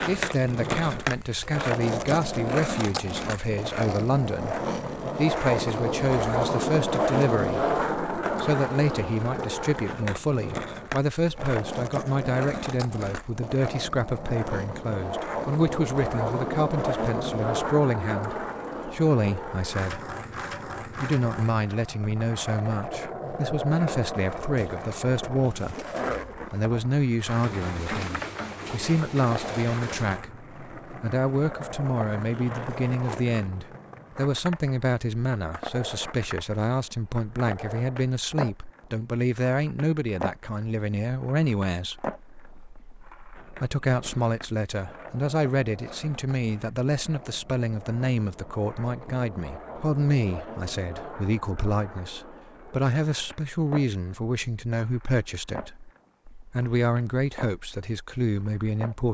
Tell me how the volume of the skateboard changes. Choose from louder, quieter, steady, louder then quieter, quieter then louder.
quieter.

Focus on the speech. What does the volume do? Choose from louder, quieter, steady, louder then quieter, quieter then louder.
steady.